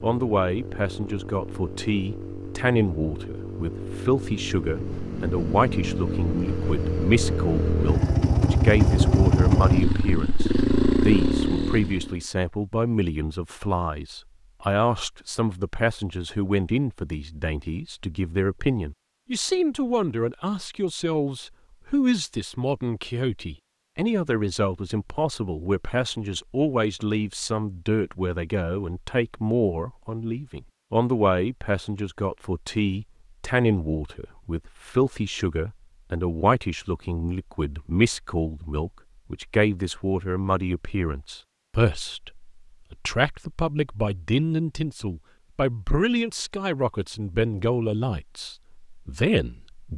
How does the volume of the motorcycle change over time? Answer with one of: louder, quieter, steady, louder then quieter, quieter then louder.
louder.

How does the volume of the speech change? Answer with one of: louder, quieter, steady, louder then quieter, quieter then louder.
steady.